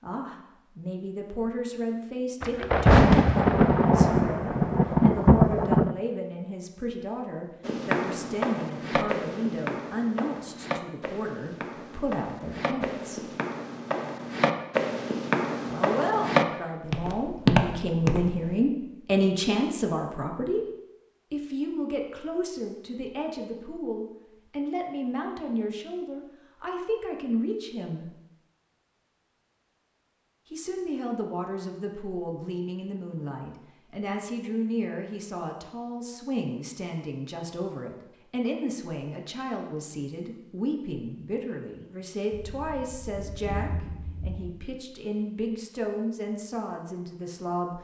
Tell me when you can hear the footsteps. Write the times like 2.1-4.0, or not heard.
7.7-18.6.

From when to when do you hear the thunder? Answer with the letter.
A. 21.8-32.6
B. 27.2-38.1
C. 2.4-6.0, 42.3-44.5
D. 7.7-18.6
C.